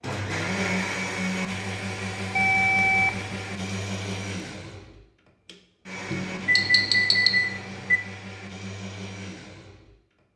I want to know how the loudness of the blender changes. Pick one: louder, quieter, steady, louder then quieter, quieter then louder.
quieter.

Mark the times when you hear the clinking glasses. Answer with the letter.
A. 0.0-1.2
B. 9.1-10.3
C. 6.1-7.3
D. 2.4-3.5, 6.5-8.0
C.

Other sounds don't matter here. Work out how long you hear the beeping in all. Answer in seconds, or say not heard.
3 s.